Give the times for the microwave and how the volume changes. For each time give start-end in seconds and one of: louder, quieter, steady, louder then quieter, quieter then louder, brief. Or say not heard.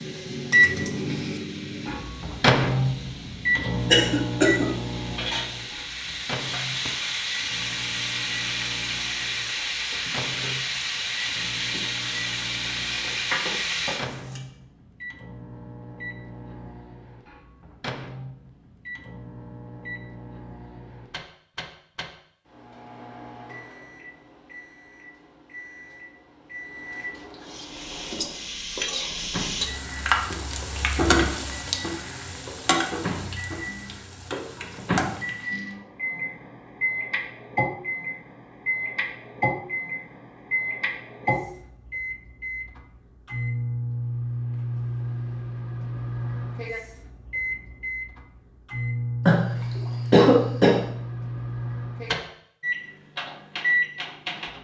0.0-54.5 quieter then louder.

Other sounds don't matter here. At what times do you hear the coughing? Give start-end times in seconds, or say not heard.
3.9-4.7, 49.2-50.8.